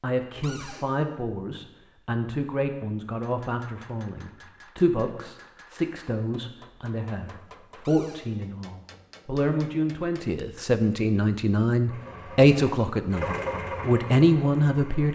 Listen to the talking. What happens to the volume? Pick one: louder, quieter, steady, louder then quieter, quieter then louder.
louder.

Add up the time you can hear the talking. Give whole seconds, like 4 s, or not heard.
15 s.